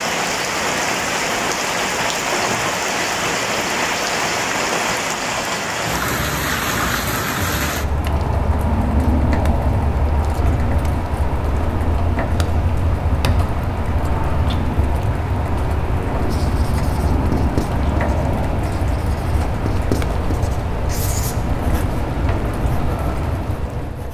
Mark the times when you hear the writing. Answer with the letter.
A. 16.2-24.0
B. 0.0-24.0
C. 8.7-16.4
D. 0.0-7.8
A.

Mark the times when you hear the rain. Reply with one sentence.
The rain can be heard from 0.0 to 24.0 s.